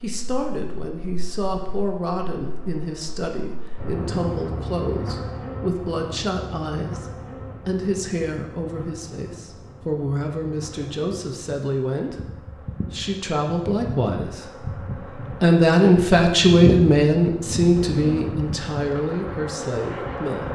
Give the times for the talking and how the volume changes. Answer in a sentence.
The talking can be heard from 0.0 to 20.4 s, getting louder.